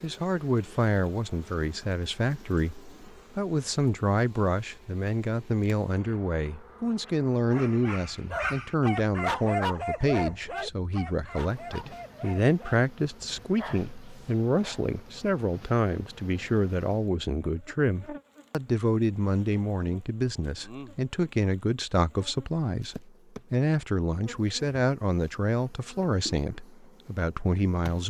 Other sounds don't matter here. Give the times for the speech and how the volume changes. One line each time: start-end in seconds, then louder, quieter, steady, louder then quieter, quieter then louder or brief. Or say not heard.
0.0-28.0 steady.